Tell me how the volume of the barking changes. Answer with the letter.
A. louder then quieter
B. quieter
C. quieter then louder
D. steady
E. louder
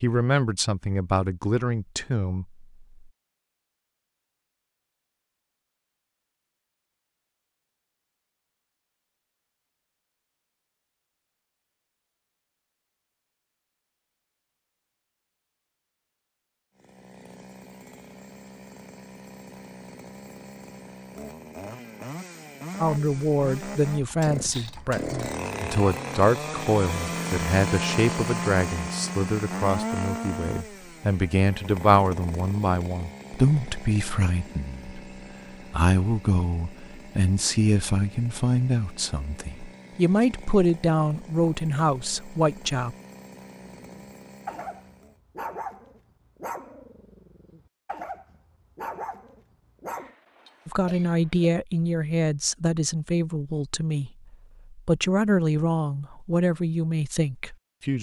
C.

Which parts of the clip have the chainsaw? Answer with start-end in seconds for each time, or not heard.
16.8-45.2.